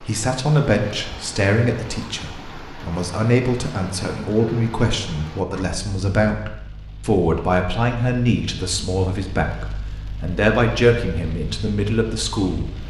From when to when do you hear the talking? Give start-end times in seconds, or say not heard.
0.0-12.8.